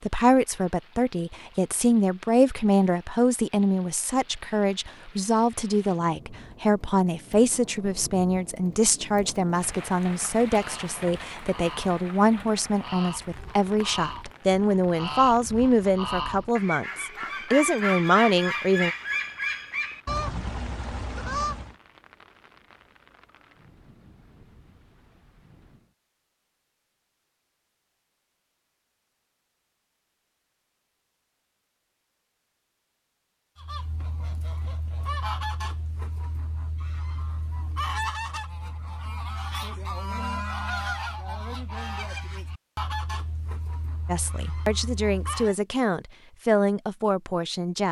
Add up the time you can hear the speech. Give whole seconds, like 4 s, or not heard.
23 s.